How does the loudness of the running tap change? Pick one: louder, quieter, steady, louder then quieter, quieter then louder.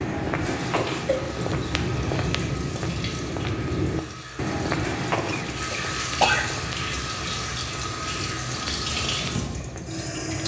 louder.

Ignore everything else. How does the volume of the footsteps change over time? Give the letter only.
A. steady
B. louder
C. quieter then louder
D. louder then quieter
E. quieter
E.